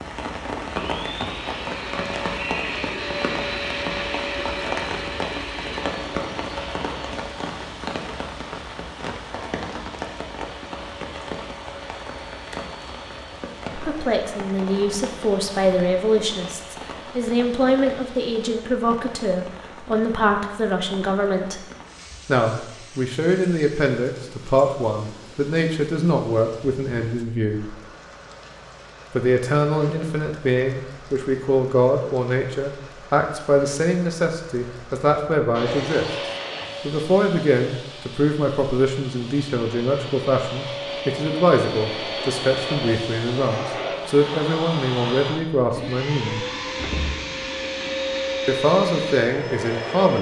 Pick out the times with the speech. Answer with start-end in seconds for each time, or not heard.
13.7-21.6, 22.2-27.8, 29.1-36.0, 36.9-46.5, 48.5-50.1.